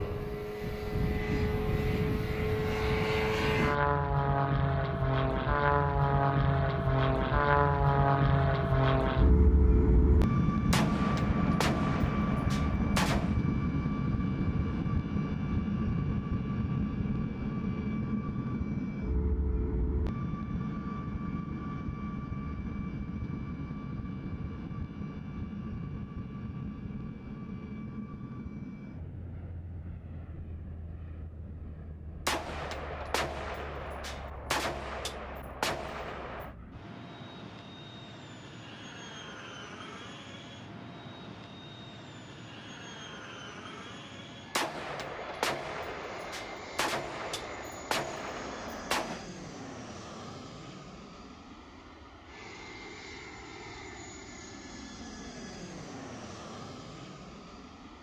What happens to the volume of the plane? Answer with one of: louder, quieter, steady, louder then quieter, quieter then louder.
quieter.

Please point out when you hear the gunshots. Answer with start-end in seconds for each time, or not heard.
10.7-13.4, 32.2-36.5, 44.5-49.2.